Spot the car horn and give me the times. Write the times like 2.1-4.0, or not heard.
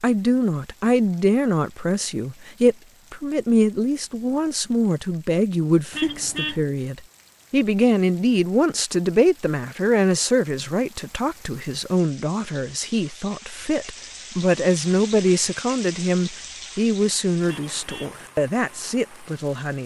5.9-6.6, 17.6-18.1.